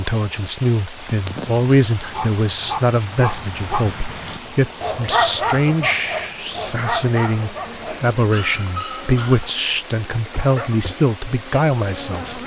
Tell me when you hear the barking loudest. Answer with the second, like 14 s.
5 s.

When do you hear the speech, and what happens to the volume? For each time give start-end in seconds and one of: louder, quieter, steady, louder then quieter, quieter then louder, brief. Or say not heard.
0.0-12.4 steady.